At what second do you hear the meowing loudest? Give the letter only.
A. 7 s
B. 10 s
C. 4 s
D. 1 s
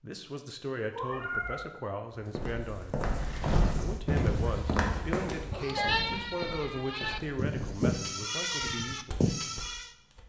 D.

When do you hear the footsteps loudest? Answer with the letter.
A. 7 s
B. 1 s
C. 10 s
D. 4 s
D.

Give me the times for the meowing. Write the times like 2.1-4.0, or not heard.
0.9-1.7, 5.7-6.3.